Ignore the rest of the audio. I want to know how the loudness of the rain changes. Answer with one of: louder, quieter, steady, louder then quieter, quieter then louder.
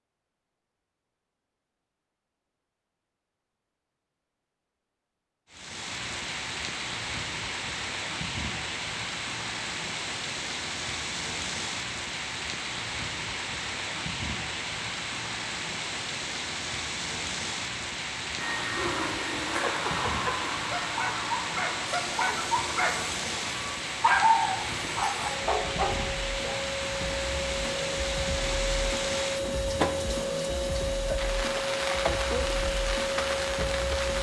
steady.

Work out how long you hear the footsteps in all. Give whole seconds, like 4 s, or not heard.
not heard.